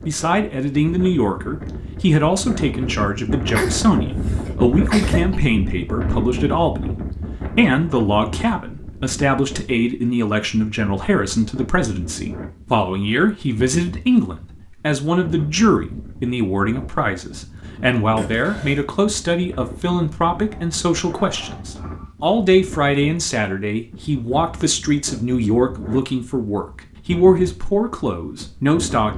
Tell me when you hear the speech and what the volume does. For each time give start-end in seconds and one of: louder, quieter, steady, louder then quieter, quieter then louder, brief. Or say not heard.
0.1-29.1 steady.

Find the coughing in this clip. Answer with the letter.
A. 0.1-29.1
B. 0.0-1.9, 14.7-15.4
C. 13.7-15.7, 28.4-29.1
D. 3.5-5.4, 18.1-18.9
D.